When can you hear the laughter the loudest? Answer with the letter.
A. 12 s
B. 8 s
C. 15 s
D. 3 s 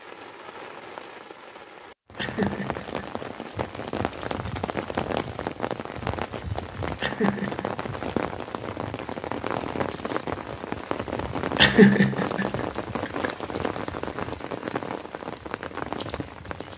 A.